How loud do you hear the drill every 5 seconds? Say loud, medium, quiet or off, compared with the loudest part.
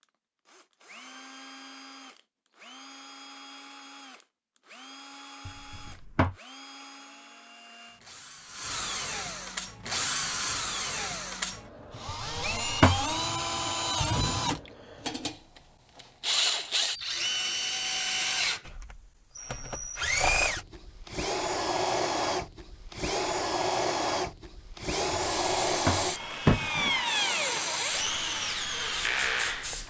quiet, medium, loud, loud, loud, loud.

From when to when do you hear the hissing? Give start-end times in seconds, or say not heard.
25.1-29.8.